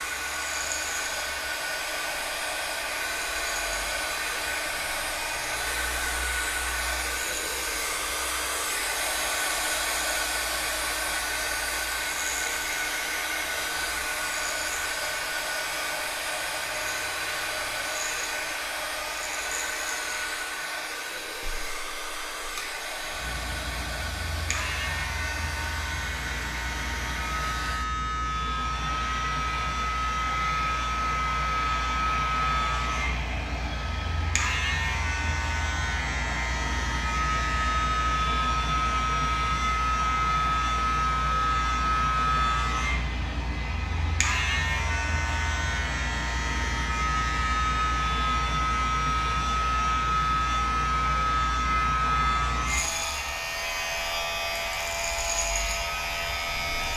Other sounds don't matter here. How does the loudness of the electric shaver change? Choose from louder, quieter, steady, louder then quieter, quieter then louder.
louder.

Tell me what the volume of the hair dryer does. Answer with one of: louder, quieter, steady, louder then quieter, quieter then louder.
quieter.